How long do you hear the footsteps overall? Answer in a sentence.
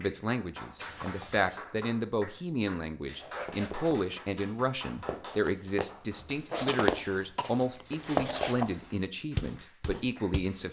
You can hear the footsteps for 7 seconds altogether.